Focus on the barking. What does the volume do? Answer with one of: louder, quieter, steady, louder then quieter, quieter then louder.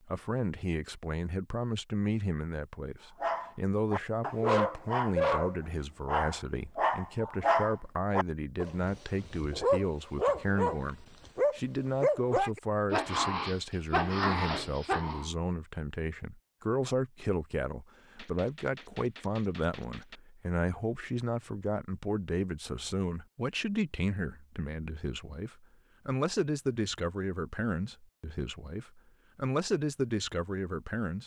steady.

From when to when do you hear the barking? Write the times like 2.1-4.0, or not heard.
3.2-15.3.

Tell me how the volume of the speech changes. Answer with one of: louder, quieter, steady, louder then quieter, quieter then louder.
steady.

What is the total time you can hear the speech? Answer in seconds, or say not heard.
31 s.